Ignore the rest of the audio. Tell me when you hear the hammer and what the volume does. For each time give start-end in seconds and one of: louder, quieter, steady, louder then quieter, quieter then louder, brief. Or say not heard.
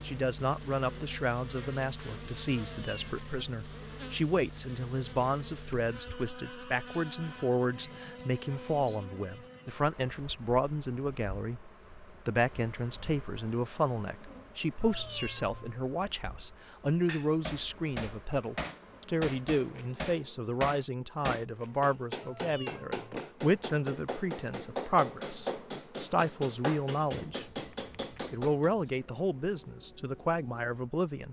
17.1-28.7 steady.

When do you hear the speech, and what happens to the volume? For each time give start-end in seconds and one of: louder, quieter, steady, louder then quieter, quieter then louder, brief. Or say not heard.
0.0-27.6 steady
28.3-31.2 brief.